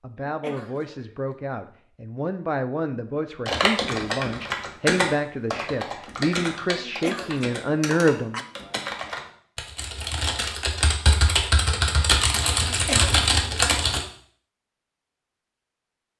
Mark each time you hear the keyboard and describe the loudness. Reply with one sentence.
You can hear the keyboard from 3.5 to 14.1 s, getting quieter then louder.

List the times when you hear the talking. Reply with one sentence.
You can hear the talking from 0.0 to 8.4 s.